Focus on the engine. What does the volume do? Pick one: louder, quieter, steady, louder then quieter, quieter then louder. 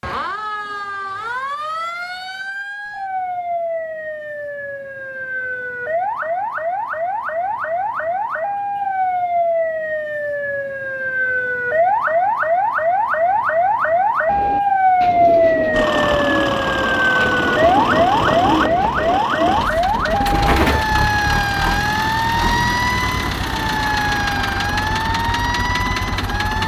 steady.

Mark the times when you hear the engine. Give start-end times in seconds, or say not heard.
15.7-26.6.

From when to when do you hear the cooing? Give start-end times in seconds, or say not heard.
14.2-20.9.